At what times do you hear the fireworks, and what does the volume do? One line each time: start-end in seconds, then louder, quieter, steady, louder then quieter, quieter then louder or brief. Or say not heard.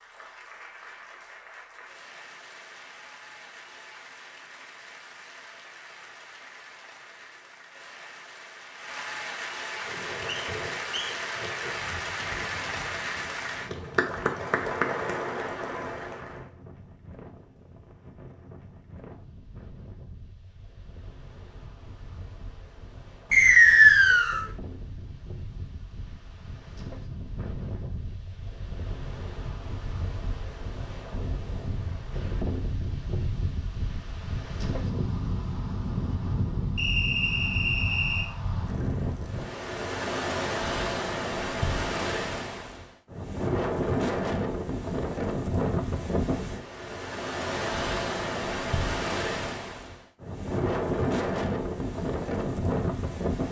not heard.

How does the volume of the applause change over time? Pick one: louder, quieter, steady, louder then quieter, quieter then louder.
louder.